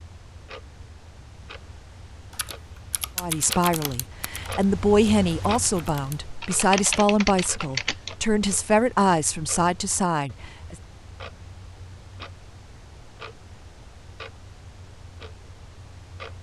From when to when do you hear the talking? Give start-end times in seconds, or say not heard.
3.1-10.8.